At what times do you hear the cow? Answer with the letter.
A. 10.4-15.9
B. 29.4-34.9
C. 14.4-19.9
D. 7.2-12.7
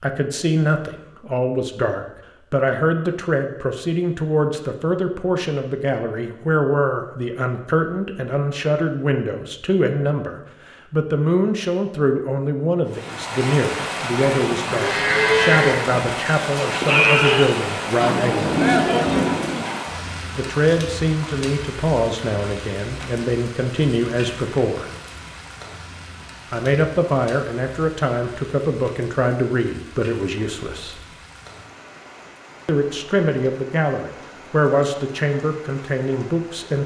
C.